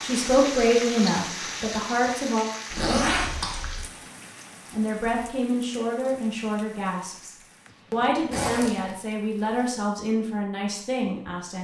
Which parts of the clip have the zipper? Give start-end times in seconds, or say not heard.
2.7-3.9, 8.3-8.9.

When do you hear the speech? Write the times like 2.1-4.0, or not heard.
0.0-2.5, 4.7-11.6.